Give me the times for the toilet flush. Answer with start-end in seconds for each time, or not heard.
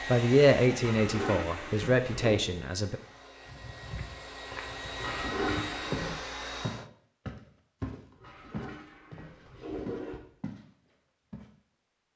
0.8-2.4, 5.0-6.2, 8.2-10.2.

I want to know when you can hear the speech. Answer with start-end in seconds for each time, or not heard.
0.1-3.0.